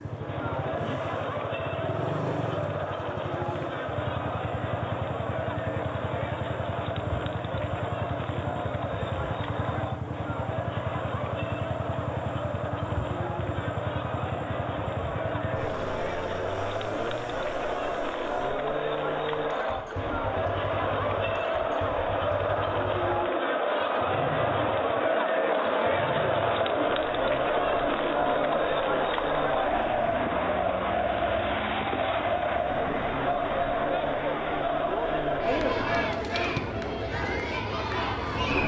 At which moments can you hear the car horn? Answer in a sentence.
The car horn can't be heard in this clip.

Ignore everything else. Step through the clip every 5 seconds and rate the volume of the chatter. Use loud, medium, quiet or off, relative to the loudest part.
medium, medium, medium, medium, loud, loud, loud, loud.